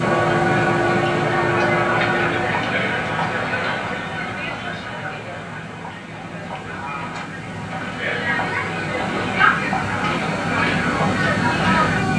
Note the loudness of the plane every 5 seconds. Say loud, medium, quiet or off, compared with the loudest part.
loud, medium, loud.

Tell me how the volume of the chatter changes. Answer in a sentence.
The volume of the chatter goes down, then up.